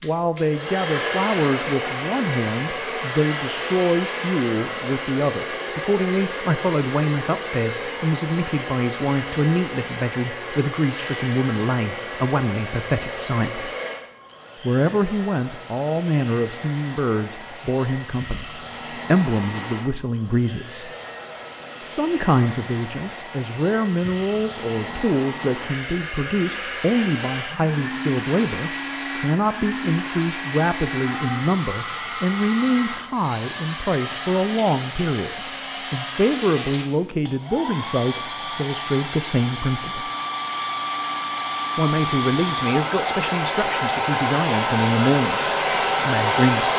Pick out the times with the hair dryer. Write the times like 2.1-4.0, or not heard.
0.0-46.7.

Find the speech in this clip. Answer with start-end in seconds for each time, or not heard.
0.0-13.7, 14.6-20.9, 21.8-40.1, 41.8-46.7.